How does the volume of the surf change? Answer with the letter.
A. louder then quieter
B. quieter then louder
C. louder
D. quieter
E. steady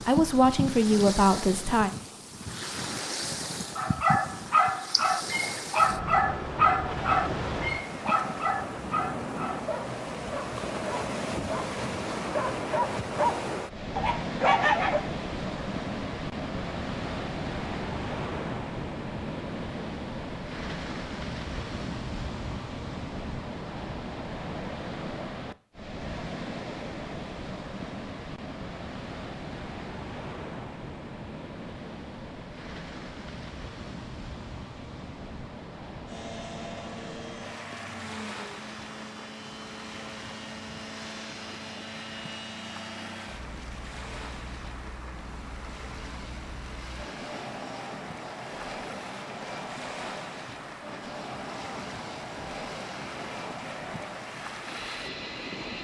D.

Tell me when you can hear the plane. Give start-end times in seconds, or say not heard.
36.0-55.7.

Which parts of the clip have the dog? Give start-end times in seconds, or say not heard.
3.8-15.0.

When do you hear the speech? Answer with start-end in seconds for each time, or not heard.
0.0-1.9.